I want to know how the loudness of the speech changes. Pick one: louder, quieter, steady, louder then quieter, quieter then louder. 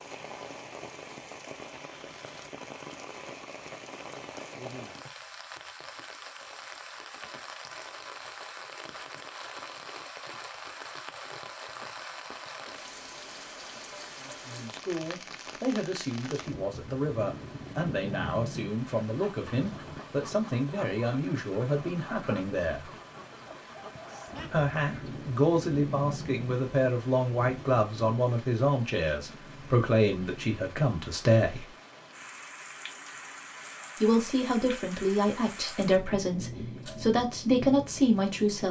louder.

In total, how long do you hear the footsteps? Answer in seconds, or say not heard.
not heard.